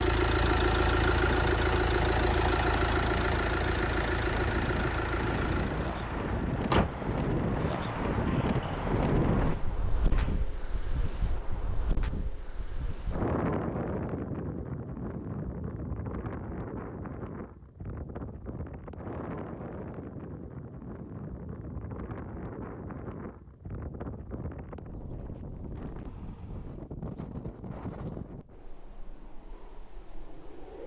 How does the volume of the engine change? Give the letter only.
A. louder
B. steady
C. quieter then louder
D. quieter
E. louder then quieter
D.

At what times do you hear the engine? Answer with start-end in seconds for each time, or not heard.
0.0-10.5.